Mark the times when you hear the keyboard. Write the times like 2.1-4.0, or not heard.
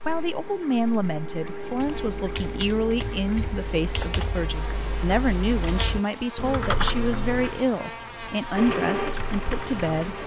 1.9-10.2.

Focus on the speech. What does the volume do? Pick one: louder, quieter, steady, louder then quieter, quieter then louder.
steady.